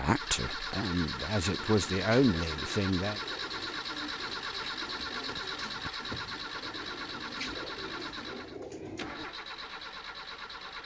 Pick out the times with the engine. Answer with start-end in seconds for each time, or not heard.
0.0-10.8.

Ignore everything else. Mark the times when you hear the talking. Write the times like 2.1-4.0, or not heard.
0.0-3.2.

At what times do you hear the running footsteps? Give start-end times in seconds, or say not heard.
not heard.